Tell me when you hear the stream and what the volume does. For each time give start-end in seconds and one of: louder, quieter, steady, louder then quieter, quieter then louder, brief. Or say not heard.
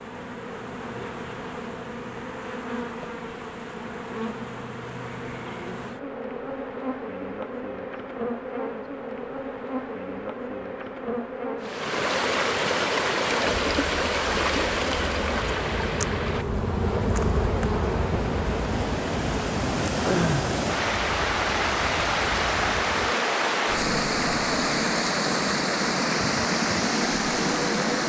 11.6-28.0 quieter then louder.